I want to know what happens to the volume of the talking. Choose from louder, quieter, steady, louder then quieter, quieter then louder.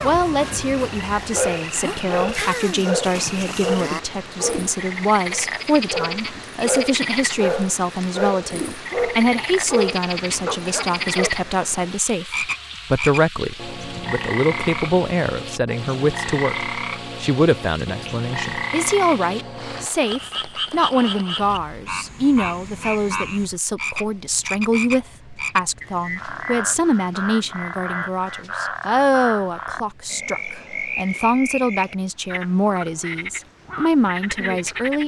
steady.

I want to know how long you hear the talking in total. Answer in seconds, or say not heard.
35 s.